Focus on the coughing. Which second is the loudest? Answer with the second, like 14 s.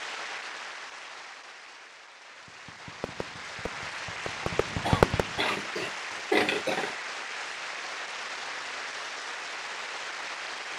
6 s.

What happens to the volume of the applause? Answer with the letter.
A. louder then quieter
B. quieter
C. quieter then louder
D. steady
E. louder
E.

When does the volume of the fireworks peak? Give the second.
5 s.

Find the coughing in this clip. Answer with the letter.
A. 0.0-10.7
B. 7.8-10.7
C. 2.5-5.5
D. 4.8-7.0
D.